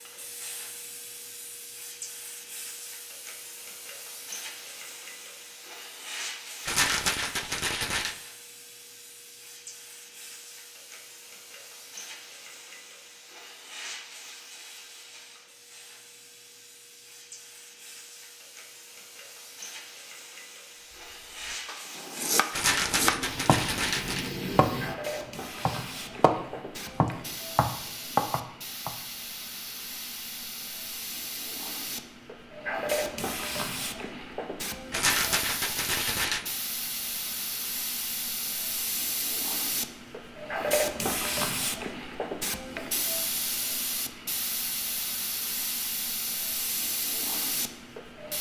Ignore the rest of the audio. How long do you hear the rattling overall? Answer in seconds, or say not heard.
5 s.